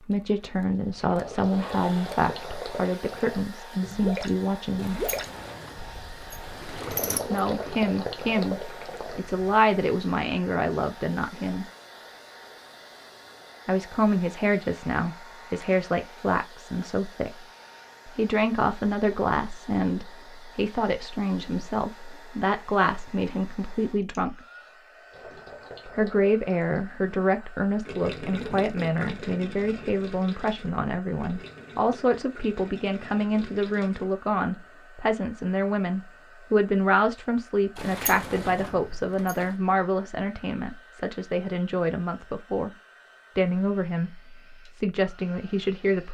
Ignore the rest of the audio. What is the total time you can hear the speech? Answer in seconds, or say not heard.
39 s.